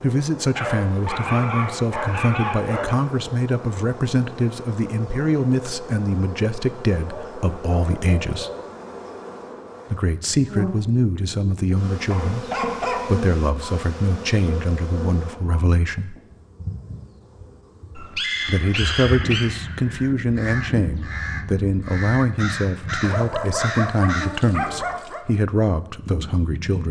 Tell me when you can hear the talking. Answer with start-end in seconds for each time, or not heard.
0.0-8.5, 9.9-16.1, 18.4-26.8.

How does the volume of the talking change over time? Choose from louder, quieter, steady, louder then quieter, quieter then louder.
steady.